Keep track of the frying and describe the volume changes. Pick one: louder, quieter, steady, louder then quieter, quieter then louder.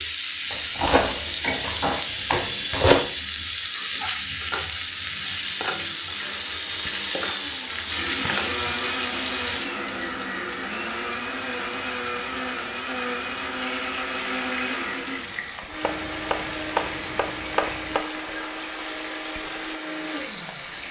quieter.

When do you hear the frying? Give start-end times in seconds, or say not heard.
0.0-20.8.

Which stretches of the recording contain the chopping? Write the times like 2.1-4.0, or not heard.
0.5-3.1, 15.8-18.1.